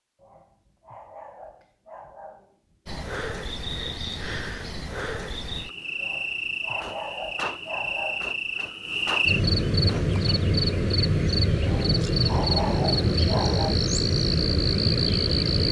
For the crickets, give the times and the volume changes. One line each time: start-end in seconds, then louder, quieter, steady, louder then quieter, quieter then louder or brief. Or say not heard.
2.9-15.6 louder.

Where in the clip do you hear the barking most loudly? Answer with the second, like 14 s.
13 s.